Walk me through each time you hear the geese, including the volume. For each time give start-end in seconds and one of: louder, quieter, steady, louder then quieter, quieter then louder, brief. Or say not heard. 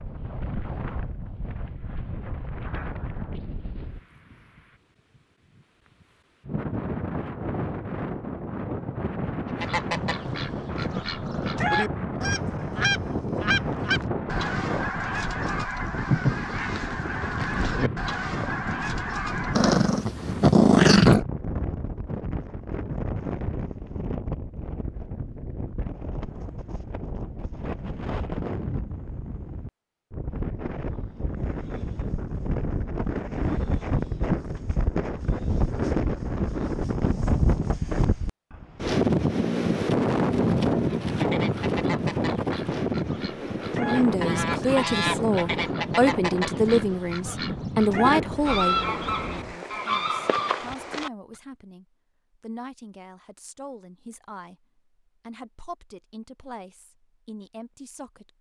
9.6-19.8 steady
40.9-51.1 louder.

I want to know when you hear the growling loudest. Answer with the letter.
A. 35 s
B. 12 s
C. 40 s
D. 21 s
D.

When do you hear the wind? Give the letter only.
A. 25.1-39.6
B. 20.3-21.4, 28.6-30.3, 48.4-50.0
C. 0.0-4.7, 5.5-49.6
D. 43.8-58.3
C.